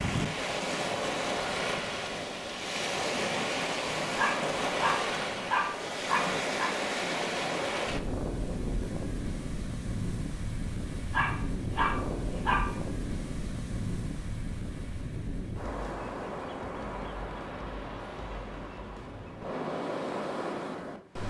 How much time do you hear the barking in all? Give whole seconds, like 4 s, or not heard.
4 s.